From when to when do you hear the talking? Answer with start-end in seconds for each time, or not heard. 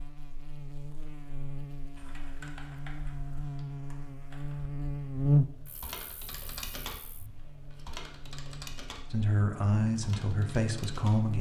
9.1-11.3.